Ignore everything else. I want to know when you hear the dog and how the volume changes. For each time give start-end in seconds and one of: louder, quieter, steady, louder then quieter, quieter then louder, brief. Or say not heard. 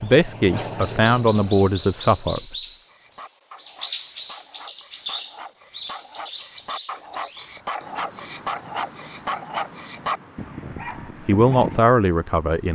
2.9-11.8 louder.